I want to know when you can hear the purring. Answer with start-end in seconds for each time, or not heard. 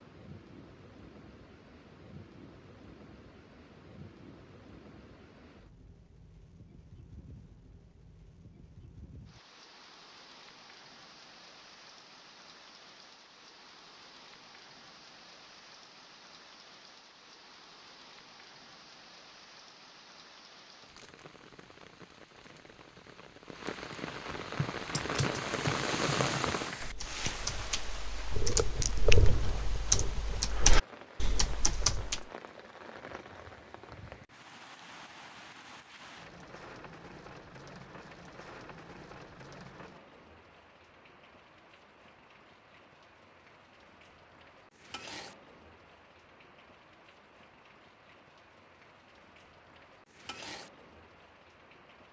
not heard.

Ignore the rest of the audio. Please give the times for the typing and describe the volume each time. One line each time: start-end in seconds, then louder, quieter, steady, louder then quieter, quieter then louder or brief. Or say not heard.
24.6-32.2 louder.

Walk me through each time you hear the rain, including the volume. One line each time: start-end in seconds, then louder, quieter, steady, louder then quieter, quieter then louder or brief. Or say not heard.
0.0-52.0 louder then quieter.